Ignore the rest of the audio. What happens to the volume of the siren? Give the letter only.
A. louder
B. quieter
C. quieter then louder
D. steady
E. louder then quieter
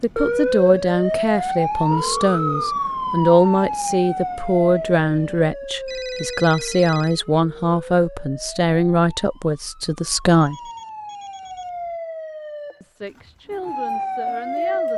C.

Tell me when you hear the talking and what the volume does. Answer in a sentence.
The talking can be heard from 0.0 to 10.7 s, at a steady volume; and briefly from 12.8 to 14.9 s.